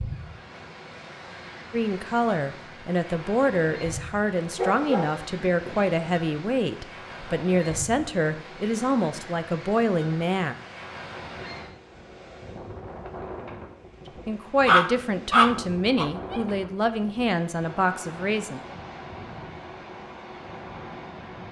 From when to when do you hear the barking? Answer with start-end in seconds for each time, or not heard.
4.5-6.2, 14.7-16.4.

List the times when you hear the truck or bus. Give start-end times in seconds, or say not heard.
not heard.